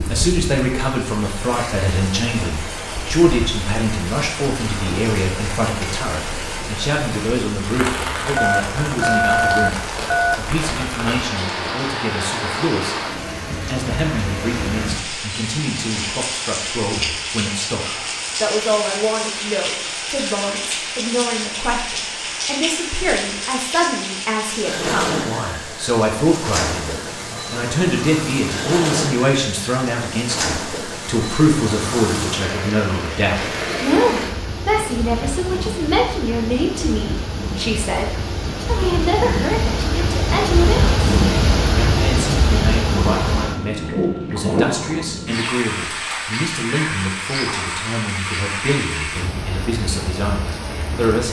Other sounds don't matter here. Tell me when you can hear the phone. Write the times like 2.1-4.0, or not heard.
8.3-10.3, 42.9-45.3.